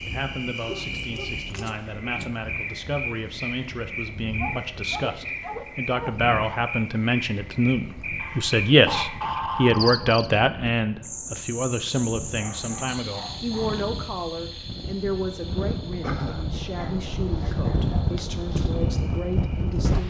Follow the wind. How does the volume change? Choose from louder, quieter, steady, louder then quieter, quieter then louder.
louder.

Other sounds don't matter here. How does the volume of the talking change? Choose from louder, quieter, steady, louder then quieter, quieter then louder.
louder then quieter.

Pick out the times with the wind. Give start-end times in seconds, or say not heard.
0.0-20.0.